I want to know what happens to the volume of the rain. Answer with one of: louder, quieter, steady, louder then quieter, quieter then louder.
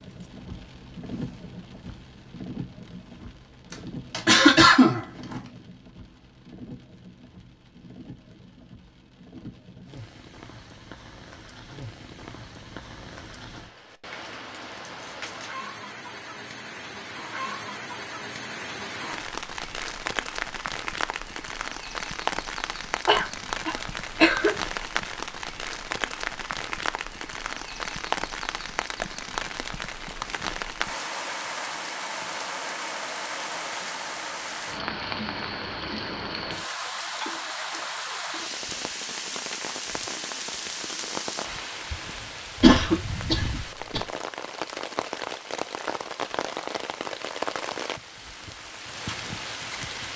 louder.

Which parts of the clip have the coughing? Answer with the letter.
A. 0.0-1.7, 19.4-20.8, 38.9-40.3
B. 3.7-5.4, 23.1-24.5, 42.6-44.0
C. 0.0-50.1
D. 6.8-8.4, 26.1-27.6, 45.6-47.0
B.